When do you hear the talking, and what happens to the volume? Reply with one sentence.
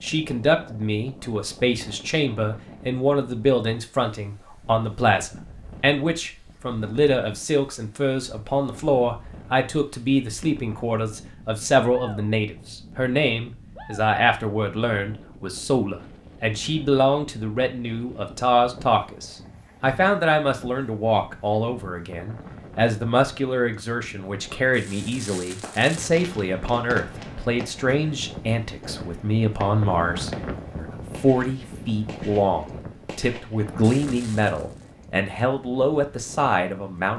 You can hear the talking from 0.0 to 37.1 s, at a steady volume.